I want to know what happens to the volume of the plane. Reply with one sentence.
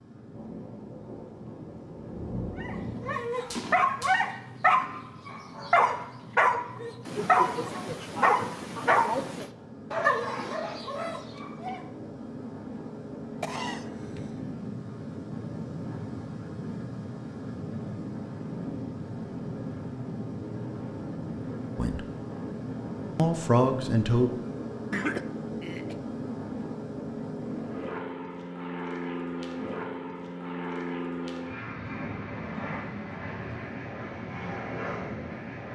The volume of the plane goes up.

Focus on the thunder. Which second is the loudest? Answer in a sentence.
The loudest moment of the thunder is at 2 seconds.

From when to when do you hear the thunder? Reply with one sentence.
The thunder can be heard from 0.3 to 4.2 s.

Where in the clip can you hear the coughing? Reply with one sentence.
You can hear the coughing from 7.0 to 9.5 s, from 13.4 to 14.3 s and from 24.9 to 25.9 s.